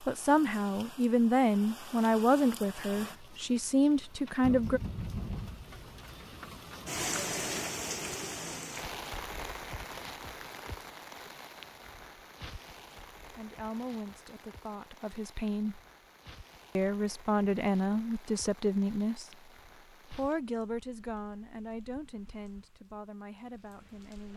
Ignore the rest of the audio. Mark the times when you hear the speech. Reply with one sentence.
You can hear the speech from 0.0 to 4.8 s, from 12.9 to 15.8 s and from 16.8 to 24.3 s.